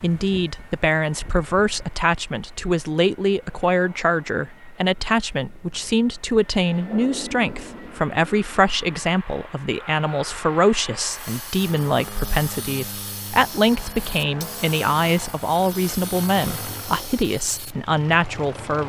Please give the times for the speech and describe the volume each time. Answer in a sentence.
You can hear the speech from 0.0 to 18.8 s, at a steady volume.